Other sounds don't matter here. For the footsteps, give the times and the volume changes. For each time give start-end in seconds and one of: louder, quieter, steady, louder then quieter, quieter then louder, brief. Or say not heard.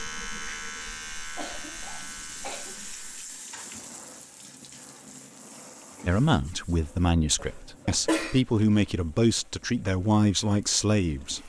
not heard.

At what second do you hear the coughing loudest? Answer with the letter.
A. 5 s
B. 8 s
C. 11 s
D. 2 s
B.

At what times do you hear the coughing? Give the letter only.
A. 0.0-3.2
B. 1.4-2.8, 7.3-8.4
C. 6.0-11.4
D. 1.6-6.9
B.